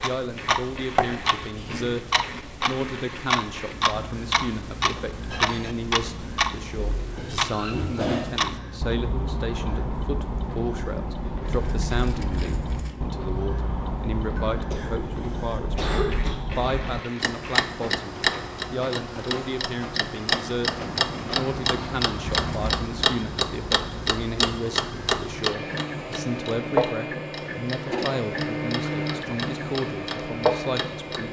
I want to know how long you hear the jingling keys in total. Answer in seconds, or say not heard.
2 s.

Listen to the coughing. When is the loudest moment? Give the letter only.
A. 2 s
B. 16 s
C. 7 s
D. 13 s
B.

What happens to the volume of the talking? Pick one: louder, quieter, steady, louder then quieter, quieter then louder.
steady.